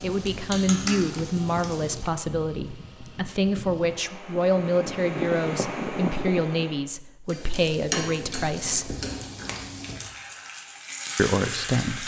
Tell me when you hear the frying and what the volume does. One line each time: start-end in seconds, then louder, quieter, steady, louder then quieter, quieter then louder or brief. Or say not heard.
0.0-2.1 brief
7.2-12.0 quieter then louder.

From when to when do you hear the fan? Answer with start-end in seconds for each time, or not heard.
0.0-6.9.